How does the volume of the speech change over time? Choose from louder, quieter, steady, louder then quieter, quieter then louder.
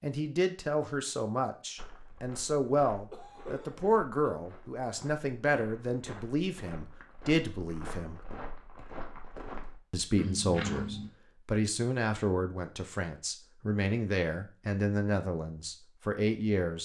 steady.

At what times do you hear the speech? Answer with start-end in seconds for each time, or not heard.
0.0-8.2, 9.9-16.7.